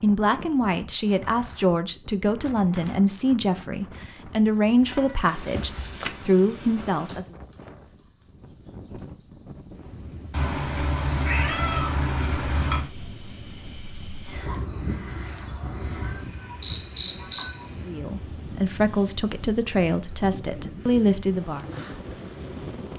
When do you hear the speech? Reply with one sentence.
The speech can be heard from 0.0 to 7.3 s and from 17.9 to 21.6 s.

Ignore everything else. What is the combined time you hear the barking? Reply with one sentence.
You can't hear the barking here.